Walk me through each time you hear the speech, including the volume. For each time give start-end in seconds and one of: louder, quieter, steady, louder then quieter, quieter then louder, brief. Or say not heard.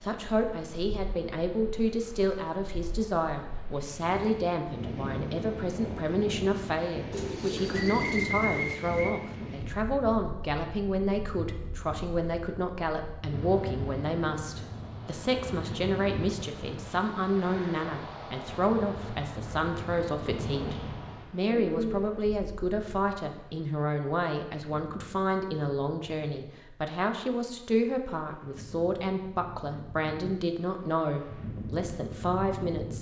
0.0-32.9 steady.